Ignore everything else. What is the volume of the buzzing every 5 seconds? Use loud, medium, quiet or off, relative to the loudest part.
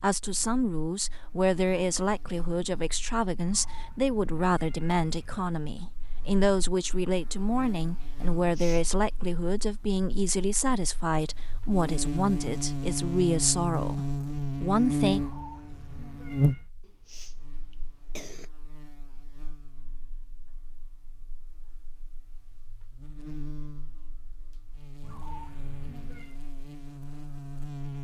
quiet, quiet, loud, loud, quiet, medium.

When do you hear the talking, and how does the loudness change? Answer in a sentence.
The talking can be heard from 0.0 to 15.2 s, at a steady volume.